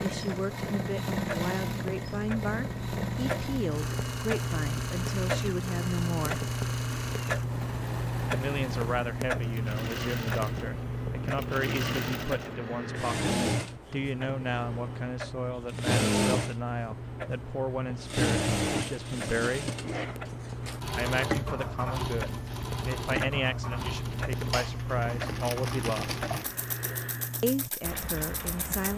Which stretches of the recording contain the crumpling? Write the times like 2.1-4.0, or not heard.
25.2-26.4.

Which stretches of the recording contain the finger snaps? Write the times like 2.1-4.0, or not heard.
not heard.